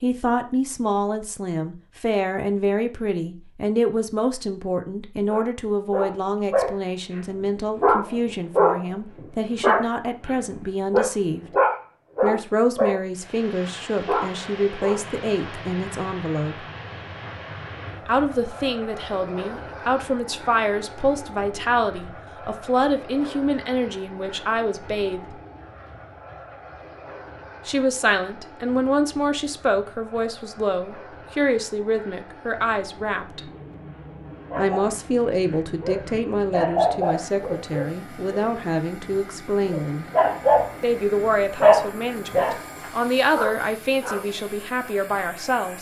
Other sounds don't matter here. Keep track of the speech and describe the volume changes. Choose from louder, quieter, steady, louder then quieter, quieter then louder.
steady.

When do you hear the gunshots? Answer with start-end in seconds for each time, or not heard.
not heard.